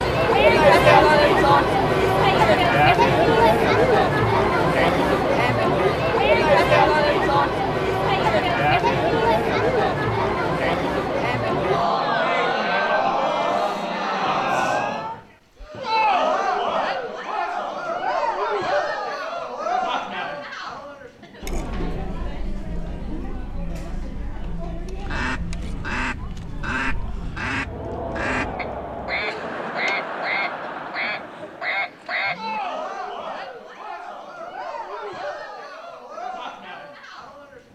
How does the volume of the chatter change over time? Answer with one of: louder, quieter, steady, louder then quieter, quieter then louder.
quieter.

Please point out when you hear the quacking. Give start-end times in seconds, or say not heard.
25.0-32.6.